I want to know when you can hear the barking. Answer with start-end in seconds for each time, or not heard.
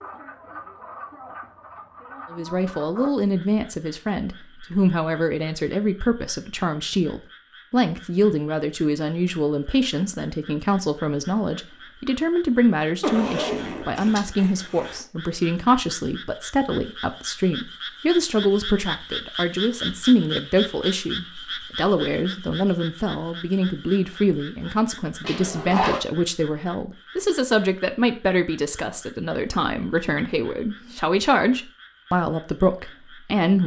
not heard.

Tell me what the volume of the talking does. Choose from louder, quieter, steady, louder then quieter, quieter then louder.
steady.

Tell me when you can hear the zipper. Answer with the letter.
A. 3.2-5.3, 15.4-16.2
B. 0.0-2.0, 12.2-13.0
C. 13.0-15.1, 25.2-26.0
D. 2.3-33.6
C.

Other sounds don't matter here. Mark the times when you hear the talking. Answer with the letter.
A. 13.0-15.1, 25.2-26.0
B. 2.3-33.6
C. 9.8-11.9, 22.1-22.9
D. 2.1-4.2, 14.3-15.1
B.